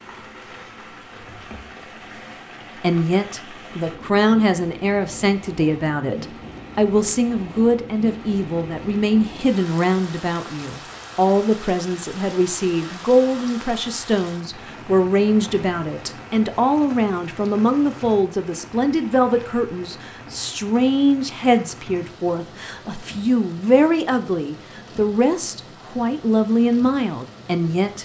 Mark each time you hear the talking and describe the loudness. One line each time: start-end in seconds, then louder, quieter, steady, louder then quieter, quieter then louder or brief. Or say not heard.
2.8-28.0 steady.